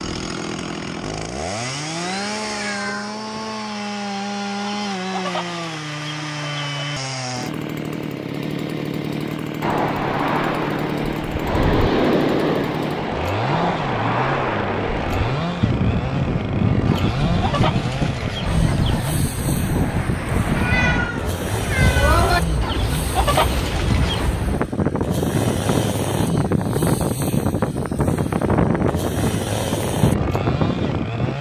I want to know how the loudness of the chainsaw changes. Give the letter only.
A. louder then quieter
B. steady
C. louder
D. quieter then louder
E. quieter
B.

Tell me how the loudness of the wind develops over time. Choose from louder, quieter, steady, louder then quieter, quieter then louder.
steady.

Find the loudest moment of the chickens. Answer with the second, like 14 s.
23 s.